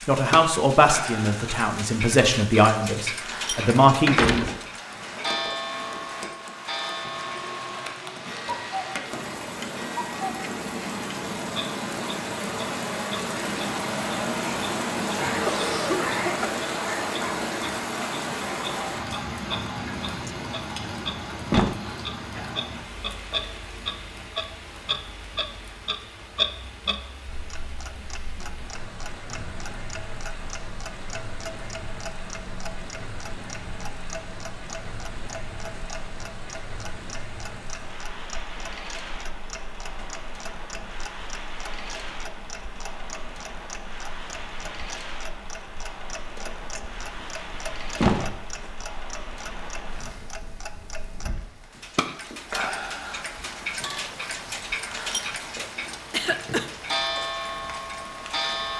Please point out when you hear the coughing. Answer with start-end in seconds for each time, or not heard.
15.4-16.6, 56.1-56.7.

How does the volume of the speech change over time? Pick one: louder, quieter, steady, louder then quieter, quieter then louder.
quieter then louder.